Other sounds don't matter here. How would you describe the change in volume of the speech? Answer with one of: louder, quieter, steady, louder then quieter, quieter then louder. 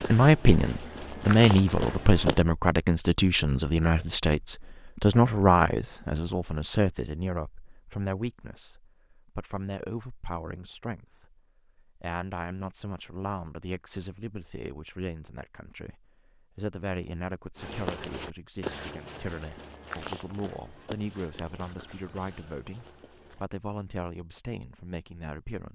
quieter.